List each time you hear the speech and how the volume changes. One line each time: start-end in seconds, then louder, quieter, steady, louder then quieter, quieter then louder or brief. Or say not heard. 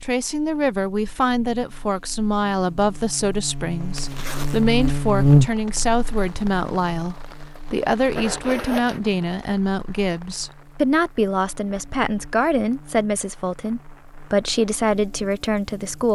0.0-16.1 steady.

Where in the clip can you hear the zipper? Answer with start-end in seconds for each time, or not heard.
4.0-4.6, 8.2-9.0.